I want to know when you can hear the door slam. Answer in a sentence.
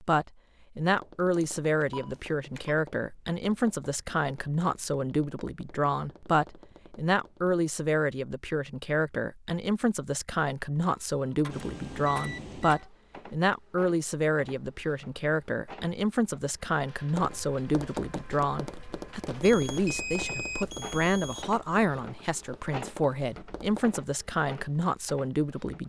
You can't hear the door slam here.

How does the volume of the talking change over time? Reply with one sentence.
The loudness of the talking stays about the same.